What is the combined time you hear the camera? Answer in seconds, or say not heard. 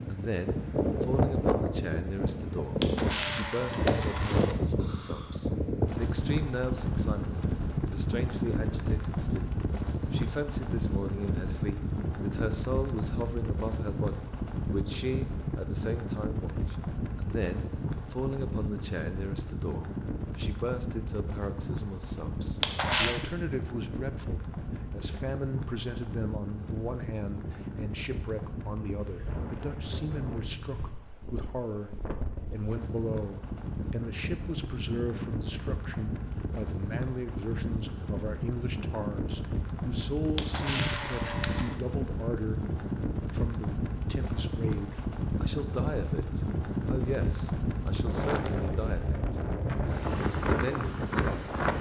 4 s.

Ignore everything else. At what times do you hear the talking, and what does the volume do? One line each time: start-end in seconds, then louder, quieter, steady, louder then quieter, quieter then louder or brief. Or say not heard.
0.1-42.6 steady
43.3-51.5 steady.